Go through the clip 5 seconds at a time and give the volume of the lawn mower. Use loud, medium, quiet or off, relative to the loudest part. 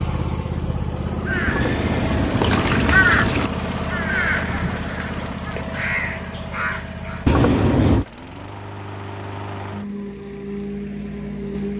loud, medium, loud.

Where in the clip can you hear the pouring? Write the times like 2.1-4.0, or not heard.
1.4-3.5, 7.2-8.1.